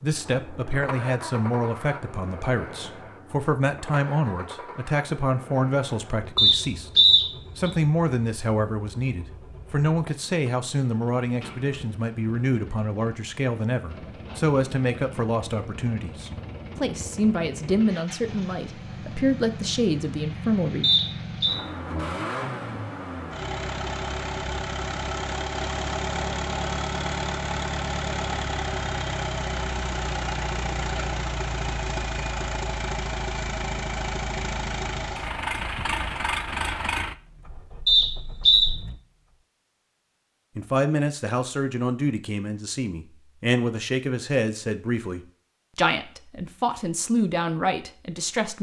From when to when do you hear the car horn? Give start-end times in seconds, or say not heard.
not heard.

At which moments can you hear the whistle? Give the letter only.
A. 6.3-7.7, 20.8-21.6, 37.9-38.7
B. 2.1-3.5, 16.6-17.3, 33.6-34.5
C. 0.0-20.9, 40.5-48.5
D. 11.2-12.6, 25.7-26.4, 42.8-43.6
A.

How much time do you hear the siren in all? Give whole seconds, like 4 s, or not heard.
not heard.